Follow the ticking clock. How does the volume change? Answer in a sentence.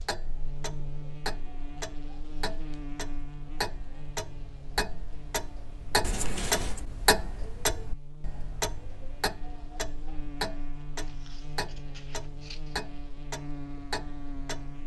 The loudness of the ticking clock goes up, then down.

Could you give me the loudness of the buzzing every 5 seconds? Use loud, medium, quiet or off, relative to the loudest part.
loud, medium, loud.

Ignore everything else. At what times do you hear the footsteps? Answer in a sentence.
The footsteps can't be heard in this clip.